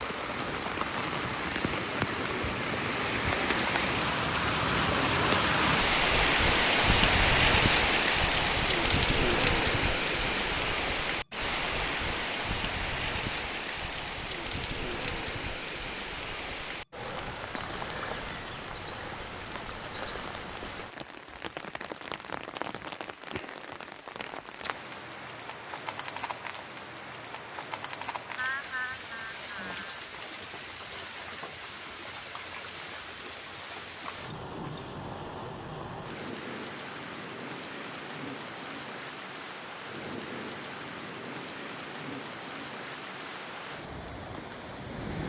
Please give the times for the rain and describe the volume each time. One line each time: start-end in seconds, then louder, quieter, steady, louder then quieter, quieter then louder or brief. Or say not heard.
0.0-45.2 quieter.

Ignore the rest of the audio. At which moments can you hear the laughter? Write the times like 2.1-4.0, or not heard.
28.4-29.9.